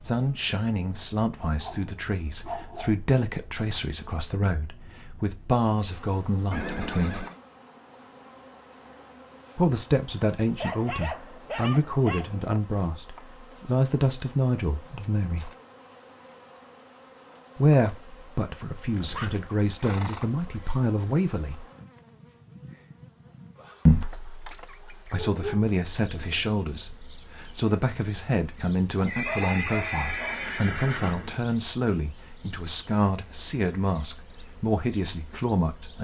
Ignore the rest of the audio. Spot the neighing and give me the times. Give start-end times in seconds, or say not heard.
6.5-7.3, 18.9-20.8, 29.1-31.4.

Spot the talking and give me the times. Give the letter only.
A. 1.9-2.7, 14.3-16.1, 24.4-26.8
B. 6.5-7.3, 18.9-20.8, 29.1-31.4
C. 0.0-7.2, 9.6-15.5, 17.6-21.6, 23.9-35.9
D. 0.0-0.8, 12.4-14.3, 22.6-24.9
C.